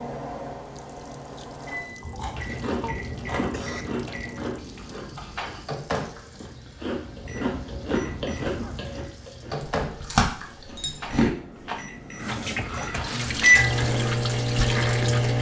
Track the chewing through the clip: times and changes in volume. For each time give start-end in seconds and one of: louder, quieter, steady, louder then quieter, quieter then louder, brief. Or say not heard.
2.0-11.3 quieter then louder.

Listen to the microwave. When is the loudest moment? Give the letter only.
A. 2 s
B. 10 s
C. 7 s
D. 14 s
D.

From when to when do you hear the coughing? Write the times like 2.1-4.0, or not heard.
2.8-3.9, 7.9-8.8.